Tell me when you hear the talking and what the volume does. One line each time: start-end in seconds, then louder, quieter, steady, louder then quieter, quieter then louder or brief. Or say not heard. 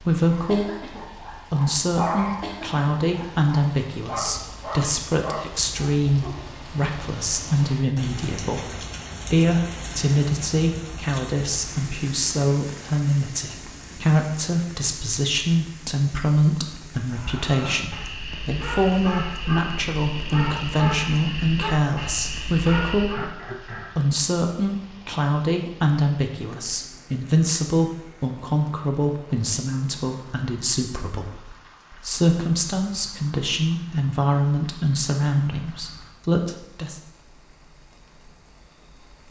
0.0-37.0 steady.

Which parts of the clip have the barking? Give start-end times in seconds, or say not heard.
0.2-6.5, 17.1-23.3.